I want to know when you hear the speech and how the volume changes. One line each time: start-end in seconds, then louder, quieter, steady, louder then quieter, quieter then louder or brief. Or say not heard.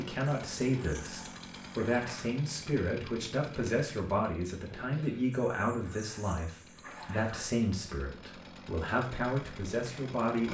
0.0-10.4 steady.